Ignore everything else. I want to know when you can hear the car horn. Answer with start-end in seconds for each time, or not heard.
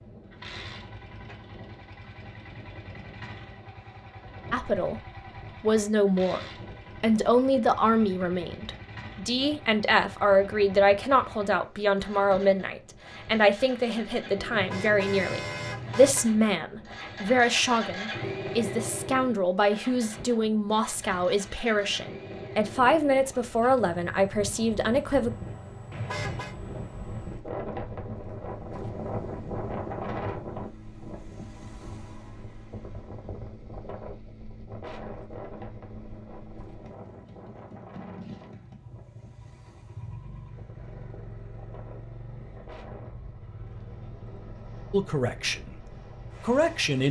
14.5-16.2, 25.9-26.6.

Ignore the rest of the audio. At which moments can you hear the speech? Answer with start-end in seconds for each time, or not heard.
4.5-25.3, 44.9-45.8, 46.4-47.0.